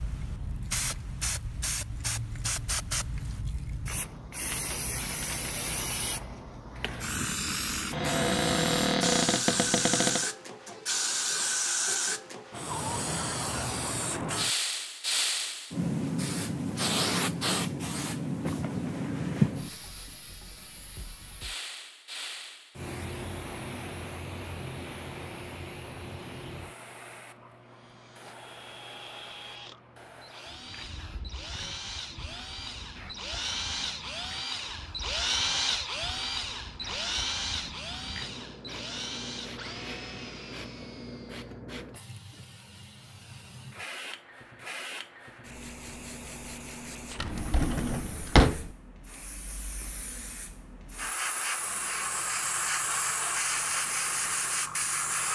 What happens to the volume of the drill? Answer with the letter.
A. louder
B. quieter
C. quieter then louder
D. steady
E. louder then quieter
E.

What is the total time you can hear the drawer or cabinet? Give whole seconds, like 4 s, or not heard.
4 s.